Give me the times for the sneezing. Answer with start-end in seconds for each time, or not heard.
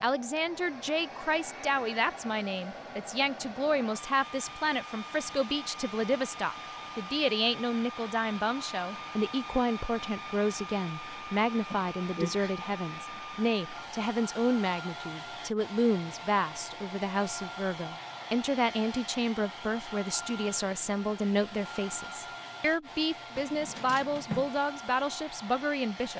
11.7-12.5.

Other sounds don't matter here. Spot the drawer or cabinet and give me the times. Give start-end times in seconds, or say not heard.
23.4-24.5.